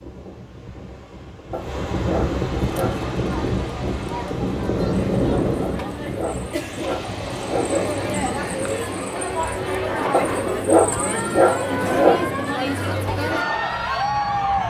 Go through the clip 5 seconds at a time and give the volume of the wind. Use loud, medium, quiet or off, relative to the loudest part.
loud, loud, medium.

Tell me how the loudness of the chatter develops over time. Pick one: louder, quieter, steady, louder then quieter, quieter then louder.
louder.